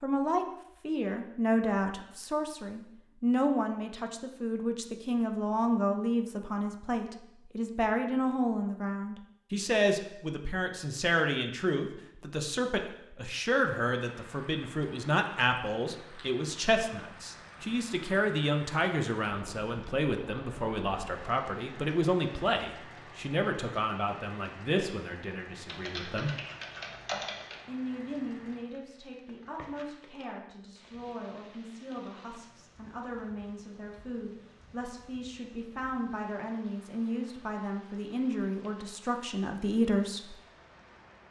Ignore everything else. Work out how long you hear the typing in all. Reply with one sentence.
You can hear the typing for 2 seconds altogether.